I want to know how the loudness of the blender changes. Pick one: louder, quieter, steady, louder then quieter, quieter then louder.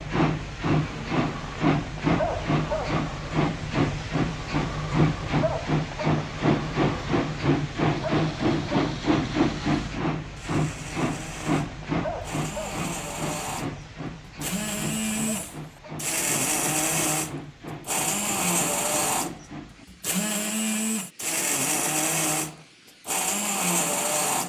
louder.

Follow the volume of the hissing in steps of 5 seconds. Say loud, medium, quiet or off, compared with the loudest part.
loud, loud, medium, quiet, quiet.